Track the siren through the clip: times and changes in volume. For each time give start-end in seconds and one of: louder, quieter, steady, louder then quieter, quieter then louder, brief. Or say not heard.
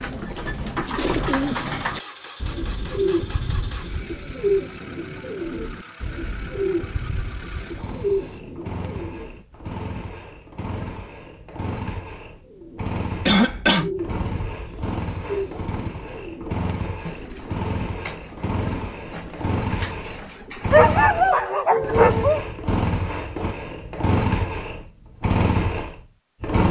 not heard.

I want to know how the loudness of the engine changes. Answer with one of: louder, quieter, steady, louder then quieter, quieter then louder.
louder.